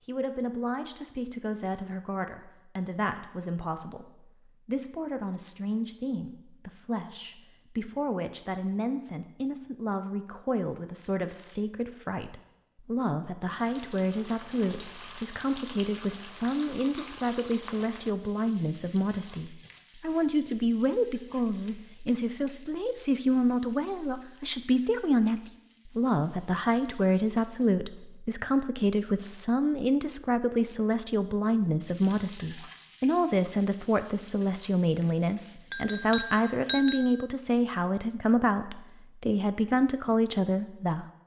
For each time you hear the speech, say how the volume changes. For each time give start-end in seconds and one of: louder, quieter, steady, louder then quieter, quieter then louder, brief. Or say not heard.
0.1-41.0 louder.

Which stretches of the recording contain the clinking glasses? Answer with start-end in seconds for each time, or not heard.
35.7-37.0.